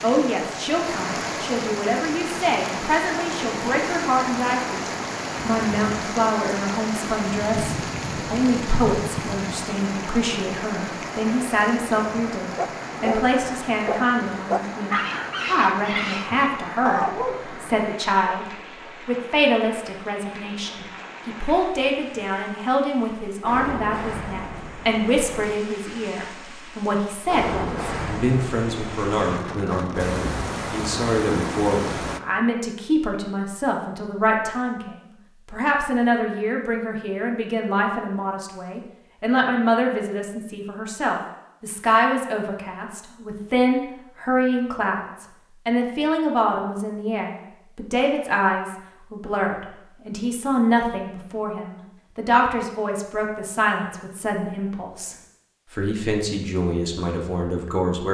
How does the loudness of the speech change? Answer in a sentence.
The loudness of the speech stays about the same.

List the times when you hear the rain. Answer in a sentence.
You can hear the rain from 0.0 to 32.2 s.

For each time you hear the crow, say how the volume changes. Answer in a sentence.
The crow can't be heard in this clip.